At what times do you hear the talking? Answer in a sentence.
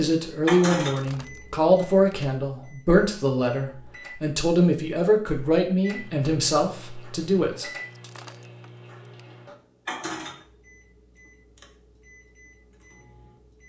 The talking can be heard from 0.0 to 7.7 s.